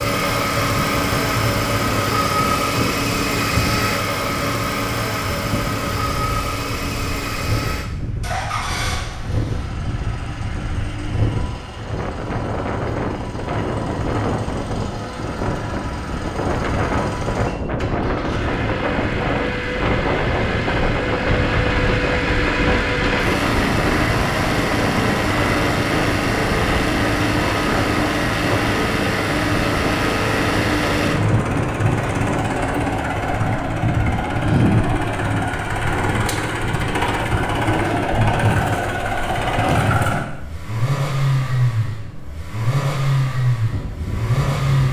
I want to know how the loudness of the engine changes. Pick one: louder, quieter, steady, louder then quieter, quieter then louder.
quieter then louder.